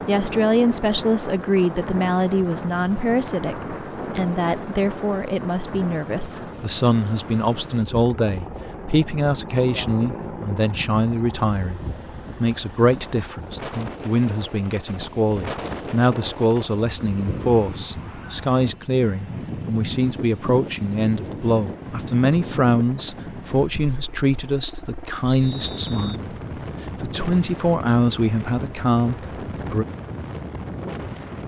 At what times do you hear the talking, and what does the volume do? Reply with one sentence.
You can hear the talking from 0.1 to 26.3 s, at a steady volume; and briefly from 27.0 to 29.9 s.